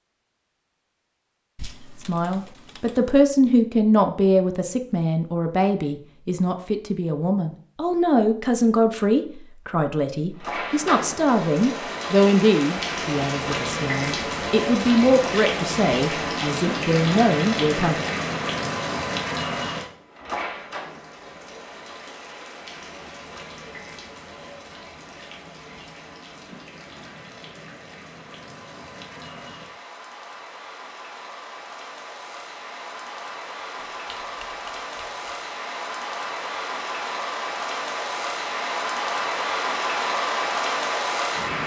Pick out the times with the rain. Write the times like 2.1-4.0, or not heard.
10.4-41.6.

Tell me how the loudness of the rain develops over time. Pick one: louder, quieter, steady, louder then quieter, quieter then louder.
quieter then louder.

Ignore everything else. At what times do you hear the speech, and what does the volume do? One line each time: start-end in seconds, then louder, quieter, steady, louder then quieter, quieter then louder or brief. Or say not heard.
2.0-18.1 steady.